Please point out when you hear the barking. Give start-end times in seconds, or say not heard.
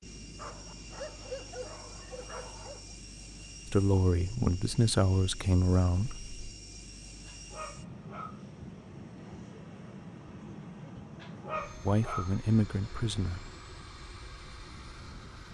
0.3-3.0, 7.2-8.4, 11.2-12.3.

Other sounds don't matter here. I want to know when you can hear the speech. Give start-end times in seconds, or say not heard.
3.7-6.3, 11.8-13.5.